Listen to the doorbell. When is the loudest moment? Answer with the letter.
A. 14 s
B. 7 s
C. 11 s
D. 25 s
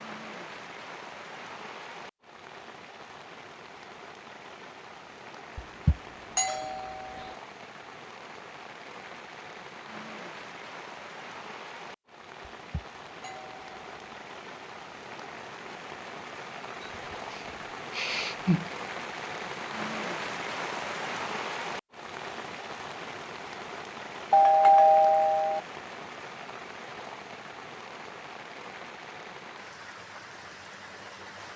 D.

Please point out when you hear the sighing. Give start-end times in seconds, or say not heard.
16.8-18.7.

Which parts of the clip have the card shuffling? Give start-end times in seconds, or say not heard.
not heard.